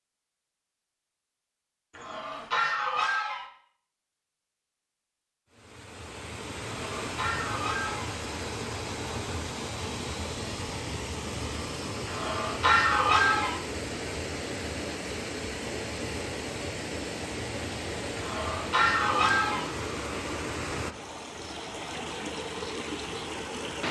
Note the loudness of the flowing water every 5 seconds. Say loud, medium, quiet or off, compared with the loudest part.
off, loud, loud, loud, loud.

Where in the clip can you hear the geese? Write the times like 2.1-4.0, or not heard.
1.9-3.5, 6.7-8.2, 12.1-13.6, 18.1-19.7.